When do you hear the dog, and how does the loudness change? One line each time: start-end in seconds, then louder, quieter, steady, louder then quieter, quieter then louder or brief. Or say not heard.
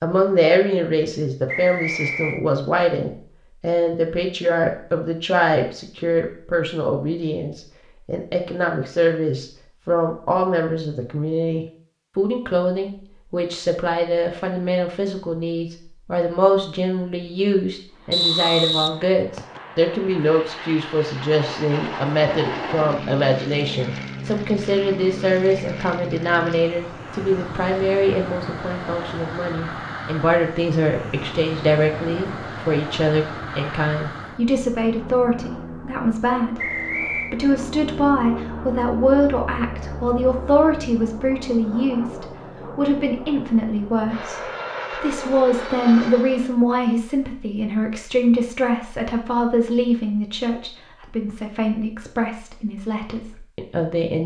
not heard.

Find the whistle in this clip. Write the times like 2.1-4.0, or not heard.
1.4-2.4, 18.1-19.6, 36.5-37.4.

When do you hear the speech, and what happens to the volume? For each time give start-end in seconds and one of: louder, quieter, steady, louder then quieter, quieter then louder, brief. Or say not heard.
0.0-54.2 steady.